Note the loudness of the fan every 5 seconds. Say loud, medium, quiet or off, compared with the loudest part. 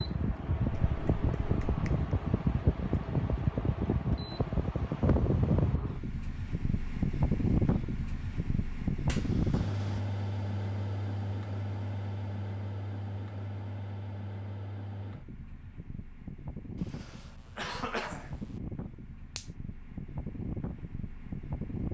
loud, loud, medium, quiet, medium.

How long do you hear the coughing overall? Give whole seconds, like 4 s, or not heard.
2 s.